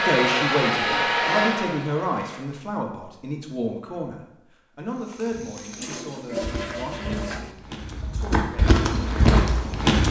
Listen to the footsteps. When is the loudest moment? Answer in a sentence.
The volume of the footsteps peaks at 9 seconds.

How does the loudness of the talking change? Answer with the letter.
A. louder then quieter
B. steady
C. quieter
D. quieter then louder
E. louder
C.